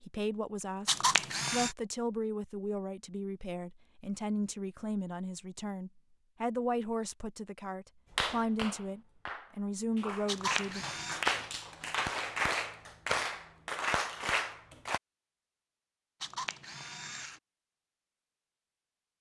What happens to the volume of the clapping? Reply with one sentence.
The volume of the clapping goes up.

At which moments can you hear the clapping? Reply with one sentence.
The clapping can be heard from 8.1 to 15.0 s.